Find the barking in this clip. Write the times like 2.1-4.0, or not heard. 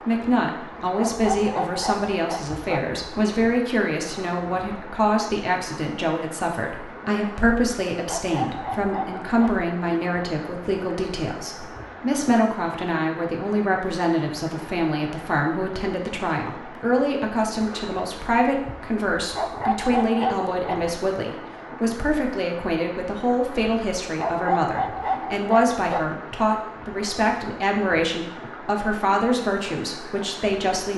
0.9-2.9, 8.1-9.7, 19.4-20.9, 24.1-26.1.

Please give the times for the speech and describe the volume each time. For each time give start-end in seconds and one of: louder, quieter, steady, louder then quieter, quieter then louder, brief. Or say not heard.
0.1-30.9 steady.